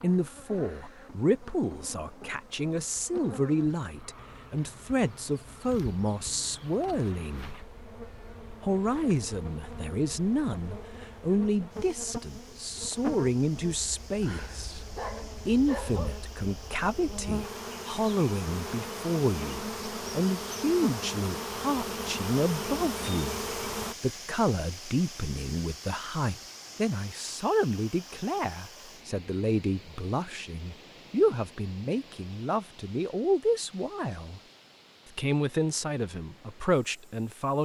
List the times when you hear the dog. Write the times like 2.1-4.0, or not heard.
14.2-16.1.